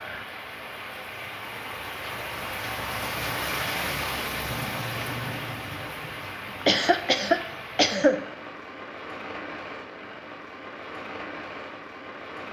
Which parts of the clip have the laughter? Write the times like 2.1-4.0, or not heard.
6.6-8.2.